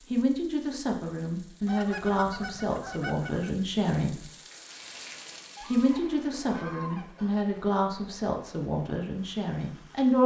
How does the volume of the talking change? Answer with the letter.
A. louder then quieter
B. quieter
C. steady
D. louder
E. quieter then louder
C.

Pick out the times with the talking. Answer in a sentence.
The talking can be heard from 0.1 to 4.2 s and from 5.7 to 10.2 s.